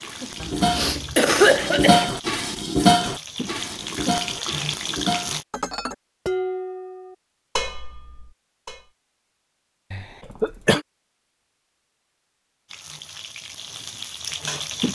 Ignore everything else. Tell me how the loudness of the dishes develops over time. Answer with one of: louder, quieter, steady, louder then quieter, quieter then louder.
quieter.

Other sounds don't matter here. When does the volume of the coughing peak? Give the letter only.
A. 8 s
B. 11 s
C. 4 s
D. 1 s
D.